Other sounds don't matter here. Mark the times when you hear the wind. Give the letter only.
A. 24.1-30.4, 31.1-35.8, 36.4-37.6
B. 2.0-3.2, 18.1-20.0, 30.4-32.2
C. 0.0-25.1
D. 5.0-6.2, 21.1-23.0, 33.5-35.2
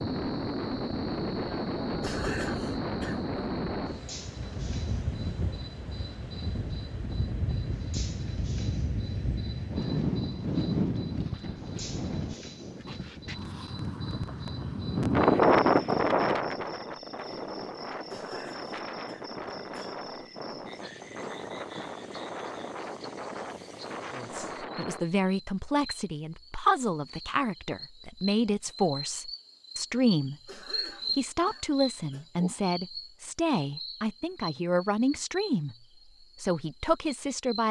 C.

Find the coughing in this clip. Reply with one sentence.
The coughing can be heard from 2.0 to 3.2 s, from 18.1 to 20.0 s and from 30.4 to 32.2 s.